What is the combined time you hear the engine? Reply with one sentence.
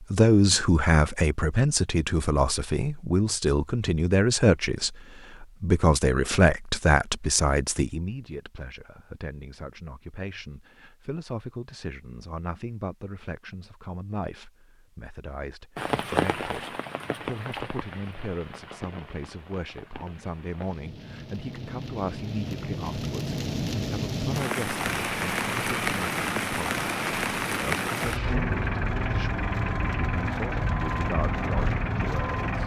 You can hear the engine for 8 seconds altogether.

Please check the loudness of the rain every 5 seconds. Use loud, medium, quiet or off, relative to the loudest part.
off, off, off, loud, loud, loud, medium.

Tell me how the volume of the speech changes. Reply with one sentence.
The loudness of the speech goes down.